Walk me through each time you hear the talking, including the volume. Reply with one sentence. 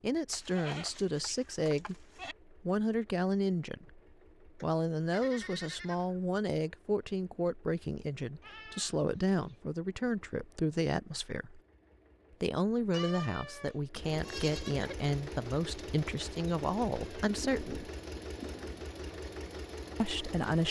The talking can be heard from 0.0 to 11.6 s, at a steady volume; from 12.4 to 17.9 s, at a steady volume; and briefly from 20.0 to 20.6 s.